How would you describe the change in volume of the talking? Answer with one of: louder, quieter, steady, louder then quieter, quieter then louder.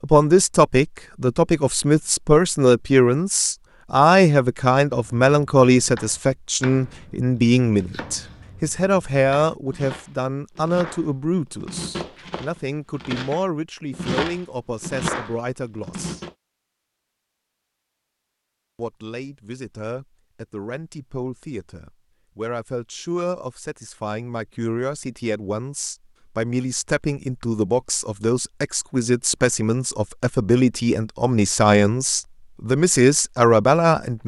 quieter then louder.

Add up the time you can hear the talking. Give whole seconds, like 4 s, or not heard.
32 s.